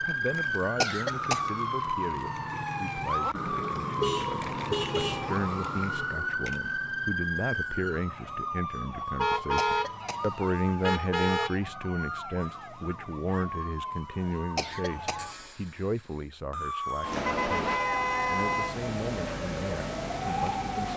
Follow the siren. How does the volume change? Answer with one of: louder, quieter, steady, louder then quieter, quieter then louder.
quieter then louder.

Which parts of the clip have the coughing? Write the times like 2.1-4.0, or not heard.
0.8-1.6, 9.6-10.3, 14.6-15.4.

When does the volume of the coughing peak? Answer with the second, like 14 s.
1 s.